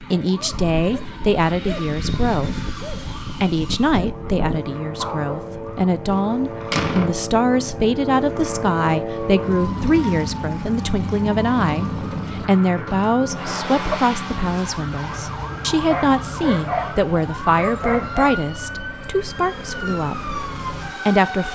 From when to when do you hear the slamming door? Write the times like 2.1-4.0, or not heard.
6.1-7.2.